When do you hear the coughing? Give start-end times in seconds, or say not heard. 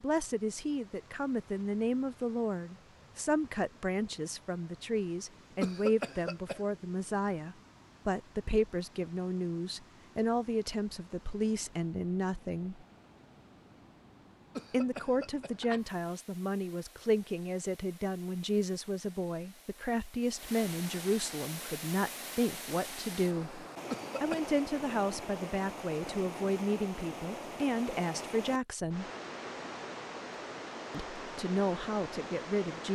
5.6-6.6, 14.6-15.8, 23.9-24.6.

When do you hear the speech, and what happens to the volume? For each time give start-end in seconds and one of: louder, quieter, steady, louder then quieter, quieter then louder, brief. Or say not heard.
0.0-12.8 steady
14.7-29.1 steady
30.9-32.9 brief.